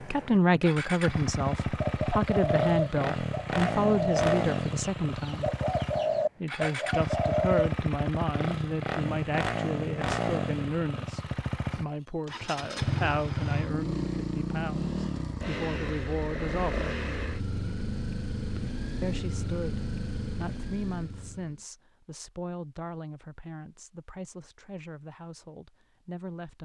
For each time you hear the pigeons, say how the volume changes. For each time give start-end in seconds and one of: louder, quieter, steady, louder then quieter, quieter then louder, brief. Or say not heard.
1.6-7.7 steady.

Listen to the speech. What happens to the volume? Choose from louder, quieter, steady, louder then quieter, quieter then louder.
quieter.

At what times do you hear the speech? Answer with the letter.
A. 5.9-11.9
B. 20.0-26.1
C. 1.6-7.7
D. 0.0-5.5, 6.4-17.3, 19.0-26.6
D.